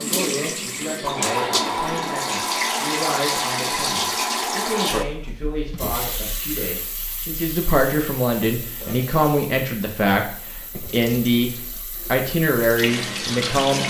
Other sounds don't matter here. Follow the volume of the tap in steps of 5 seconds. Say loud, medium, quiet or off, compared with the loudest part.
loud, quiet, medium.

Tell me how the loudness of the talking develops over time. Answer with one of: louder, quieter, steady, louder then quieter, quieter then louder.
louder.